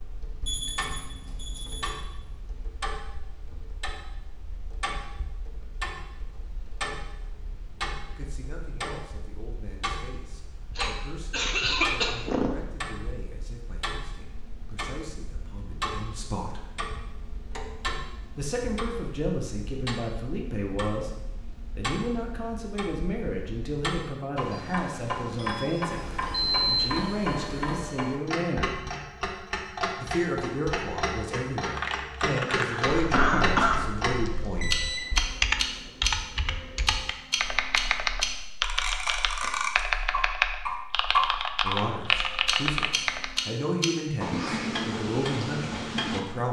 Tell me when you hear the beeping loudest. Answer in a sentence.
The volume of the beeping peaks at 27 seconds.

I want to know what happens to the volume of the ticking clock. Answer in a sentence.
The loudness of the ticking clock goes up.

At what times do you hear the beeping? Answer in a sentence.
You can hear the beeping from 0.4 to 2.0 s, from 25.9 to 27.9 s and from 34.6 to 35.1 s.